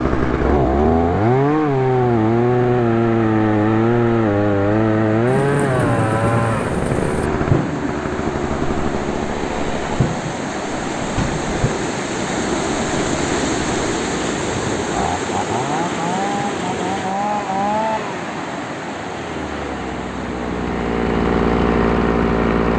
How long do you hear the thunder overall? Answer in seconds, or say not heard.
2 s.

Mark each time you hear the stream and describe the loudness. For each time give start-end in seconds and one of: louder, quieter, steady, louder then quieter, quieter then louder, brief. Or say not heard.
0.0-22.7 louder then quieter.